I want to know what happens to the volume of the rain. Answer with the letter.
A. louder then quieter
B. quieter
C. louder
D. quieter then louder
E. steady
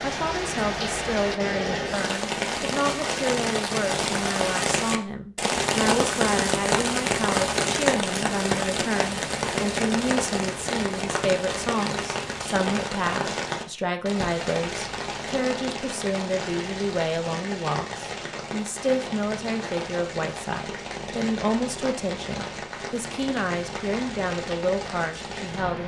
B.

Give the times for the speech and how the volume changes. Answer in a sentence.
You can hear the speech from 0.0 to 25.8 s, at a steady volume.